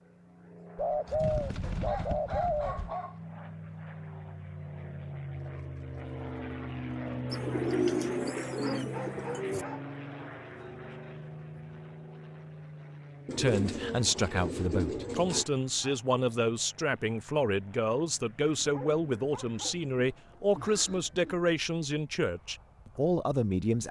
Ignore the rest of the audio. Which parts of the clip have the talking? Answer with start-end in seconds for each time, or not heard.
13.3-23.8.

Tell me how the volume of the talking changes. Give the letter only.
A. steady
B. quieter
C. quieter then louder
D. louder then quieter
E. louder
A.